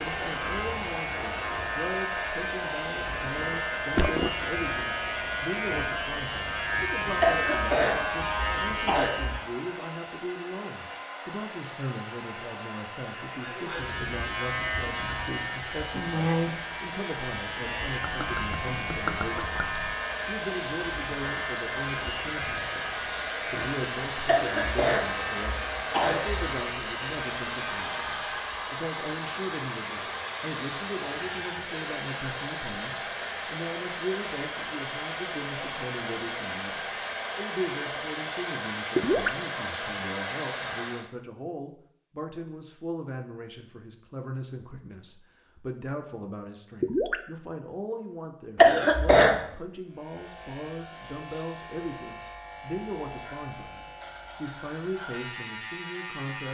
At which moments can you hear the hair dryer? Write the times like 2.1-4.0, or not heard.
0.0-41.1.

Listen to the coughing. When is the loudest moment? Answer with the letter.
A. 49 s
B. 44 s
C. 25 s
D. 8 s
A.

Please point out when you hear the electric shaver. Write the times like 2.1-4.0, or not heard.
0.0-9.5, 13.6-28.6, 49.9-56.5.